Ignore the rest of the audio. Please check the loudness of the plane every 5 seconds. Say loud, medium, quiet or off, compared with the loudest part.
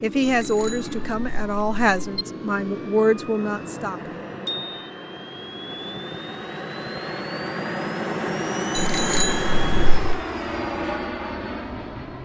medium, loud, loud.